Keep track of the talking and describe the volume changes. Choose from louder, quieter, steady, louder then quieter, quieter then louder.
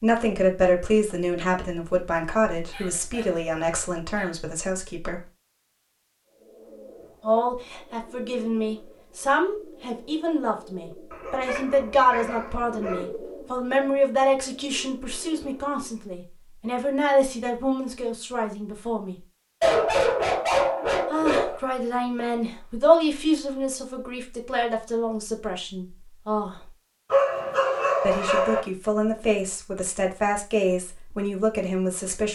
steady.